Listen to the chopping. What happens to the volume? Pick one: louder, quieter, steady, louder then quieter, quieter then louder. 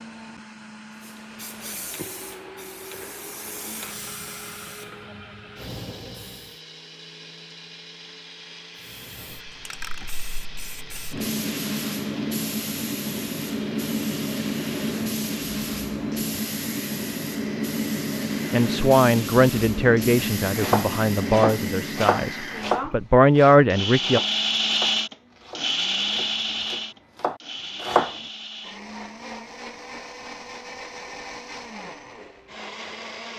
quieter then louder.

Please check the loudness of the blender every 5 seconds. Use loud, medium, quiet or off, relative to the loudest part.
quiet, quiet, quiet, quiet, loud, loud, medium.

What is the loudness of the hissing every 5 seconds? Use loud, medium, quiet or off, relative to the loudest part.
quiet, quiet, loud, loud, loud, off, off.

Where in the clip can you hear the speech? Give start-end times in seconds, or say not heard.
18.5-24.2.